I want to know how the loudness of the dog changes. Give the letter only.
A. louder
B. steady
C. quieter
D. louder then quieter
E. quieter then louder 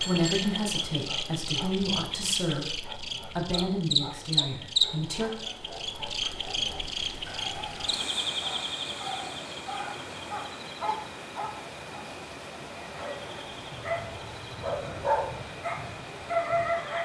A.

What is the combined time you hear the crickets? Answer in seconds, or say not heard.
17 s.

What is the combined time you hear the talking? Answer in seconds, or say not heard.
5 s.